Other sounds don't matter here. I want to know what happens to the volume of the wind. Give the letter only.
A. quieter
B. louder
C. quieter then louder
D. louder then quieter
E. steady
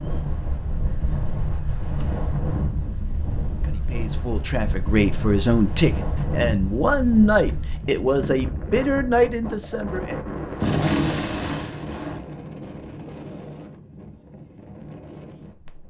A.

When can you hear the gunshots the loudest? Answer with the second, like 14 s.
11 s.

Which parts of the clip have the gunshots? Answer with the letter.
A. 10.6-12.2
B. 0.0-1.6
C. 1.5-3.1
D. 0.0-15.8
A.